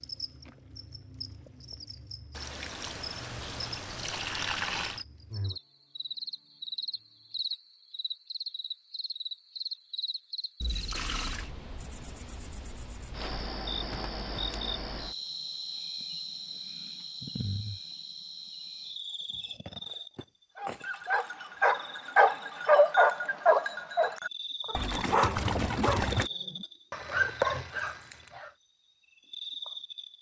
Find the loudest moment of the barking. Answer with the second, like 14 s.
23 s.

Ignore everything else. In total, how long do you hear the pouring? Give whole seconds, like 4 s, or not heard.
5 s.